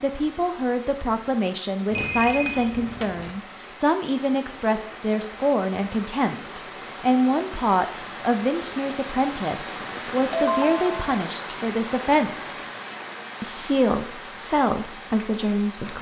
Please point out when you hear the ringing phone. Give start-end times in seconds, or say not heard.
1.9-3.4, 10.2-11.2.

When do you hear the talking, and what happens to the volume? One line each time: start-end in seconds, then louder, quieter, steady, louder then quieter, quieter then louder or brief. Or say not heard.
0.0-12.6 steady
13.4-15.9 brief.